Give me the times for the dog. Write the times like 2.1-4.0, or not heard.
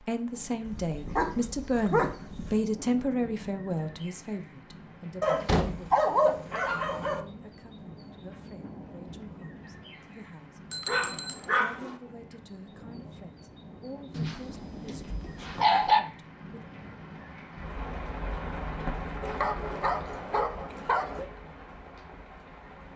0.7-2.6, 5.2-7.2, 10.8-11.9, 14.1-16.0, 19.2-21.2.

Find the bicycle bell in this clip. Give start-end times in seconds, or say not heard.
10.7-11.5.